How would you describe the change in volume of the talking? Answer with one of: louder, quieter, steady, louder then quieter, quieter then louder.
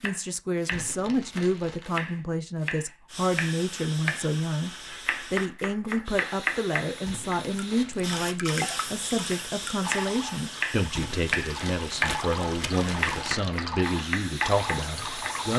steady.